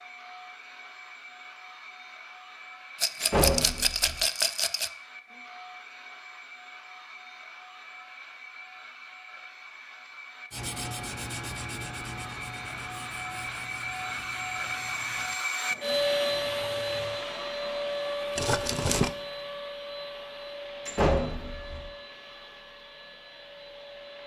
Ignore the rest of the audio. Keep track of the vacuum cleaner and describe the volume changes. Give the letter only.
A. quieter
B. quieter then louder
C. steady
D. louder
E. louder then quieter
E.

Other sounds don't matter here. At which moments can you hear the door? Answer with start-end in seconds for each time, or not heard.
3.2-4.2, 20.9-21.9.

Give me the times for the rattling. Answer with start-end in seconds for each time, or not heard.
3.0-4.9, 18.4-19.1.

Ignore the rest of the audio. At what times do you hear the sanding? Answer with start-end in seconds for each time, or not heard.
10.5-17.2.